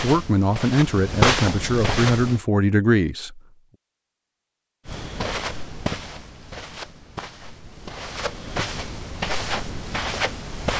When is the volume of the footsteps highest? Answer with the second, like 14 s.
1 s.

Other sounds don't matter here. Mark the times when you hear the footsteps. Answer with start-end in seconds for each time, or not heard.
0.0-2.4, 4.8-10.7.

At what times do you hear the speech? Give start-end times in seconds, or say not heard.
0.0-3.4.